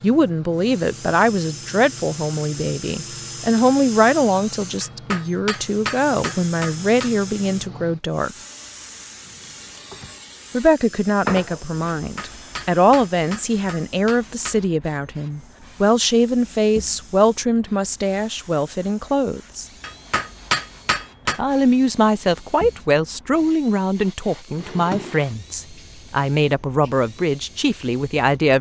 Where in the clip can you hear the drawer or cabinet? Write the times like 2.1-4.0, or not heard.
9.2-10.2, 24.5-25.2.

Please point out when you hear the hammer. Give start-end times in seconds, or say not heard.
4.8-7.1, 11.9-14.6, 19.8-21.4.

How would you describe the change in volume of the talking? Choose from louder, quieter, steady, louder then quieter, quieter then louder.
steady.